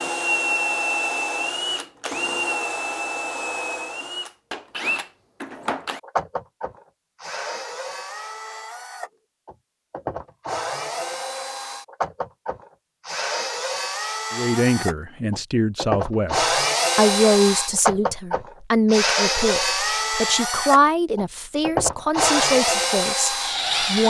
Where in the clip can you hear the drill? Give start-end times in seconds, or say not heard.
0.0-24.0.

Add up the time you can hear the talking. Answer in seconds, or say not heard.
10 s.